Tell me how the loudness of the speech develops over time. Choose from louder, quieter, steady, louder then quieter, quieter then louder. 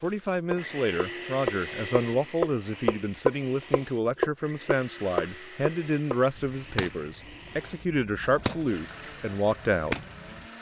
steady.